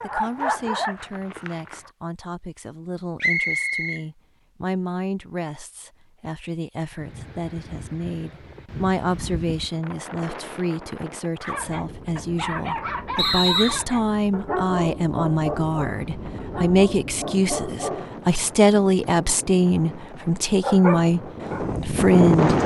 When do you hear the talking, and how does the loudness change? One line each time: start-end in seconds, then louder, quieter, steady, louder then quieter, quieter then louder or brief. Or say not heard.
0.0-21.2 louder
21.8-22.6 brief.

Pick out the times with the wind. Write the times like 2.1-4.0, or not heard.
6.9-22.6.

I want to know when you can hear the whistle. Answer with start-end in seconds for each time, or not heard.
3.2-4.0, 13.2-13.8.